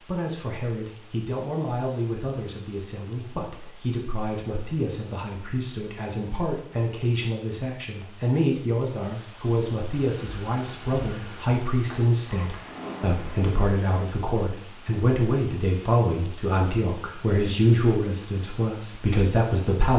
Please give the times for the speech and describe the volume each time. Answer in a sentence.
You can hear the speech from 0.1 to 19.9 s, getting louder.